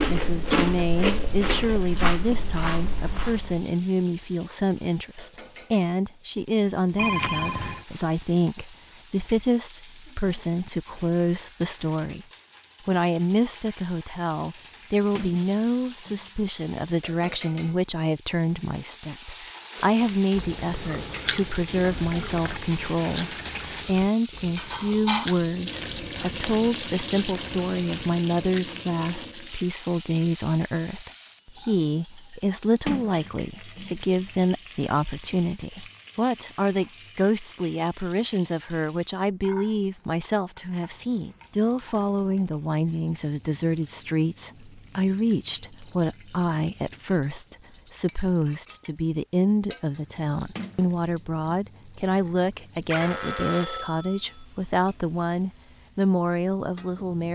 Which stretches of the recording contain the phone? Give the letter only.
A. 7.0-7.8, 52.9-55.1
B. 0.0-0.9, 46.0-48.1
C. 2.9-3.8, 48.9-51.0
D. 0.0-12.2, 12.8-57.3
A.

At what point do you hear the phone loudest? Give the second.
7 s.